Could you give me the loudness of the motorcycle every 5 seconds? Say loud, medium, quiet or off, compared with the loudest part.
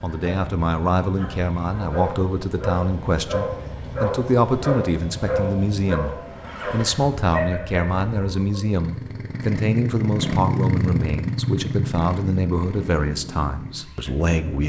medium, medium, loud.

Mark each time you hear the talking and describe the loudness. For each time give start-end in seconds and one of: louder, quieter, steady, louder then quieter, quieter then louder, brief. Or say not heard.
0.0-14.6 steady.